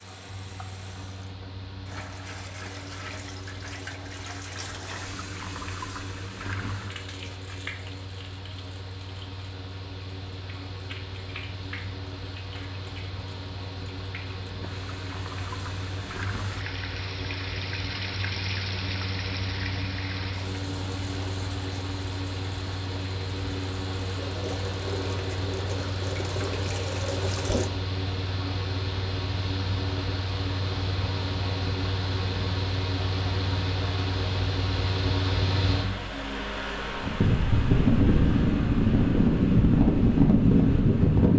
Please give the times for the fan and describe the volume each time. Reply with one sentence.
You can hear the fan from 0.0 to 41.3 s, getting louder.